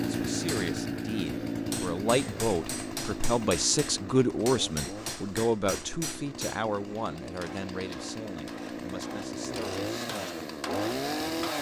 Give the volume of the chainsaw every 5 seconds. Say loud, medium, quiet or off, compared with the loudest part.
loud, medium, loud.